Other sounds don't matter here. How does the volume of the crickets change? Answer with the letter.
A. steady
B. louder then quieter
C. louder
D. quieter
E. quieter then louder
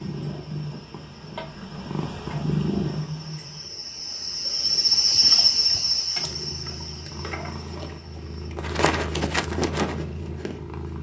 B.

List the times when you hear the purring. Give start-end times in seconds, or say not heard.
0.0-3.6, 6.2-10.9.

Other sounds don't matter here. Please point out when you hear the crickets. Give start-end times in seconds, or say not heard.
0.0-8.6.